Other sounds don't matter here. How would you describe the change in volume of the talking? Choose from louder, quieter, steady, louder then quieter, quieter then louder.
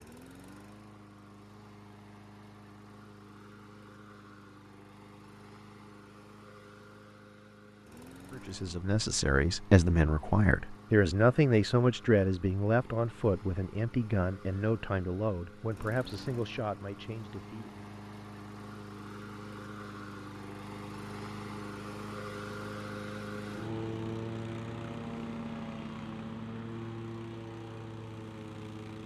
quieter.